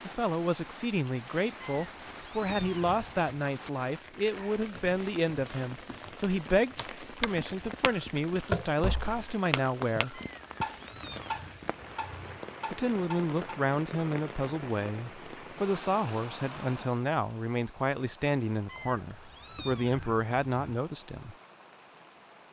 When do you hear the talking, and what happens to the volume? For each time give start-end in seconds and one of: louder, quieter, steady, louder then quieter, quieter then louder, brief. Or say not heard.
0.0-10.2 steady
12.7-21.4 steady.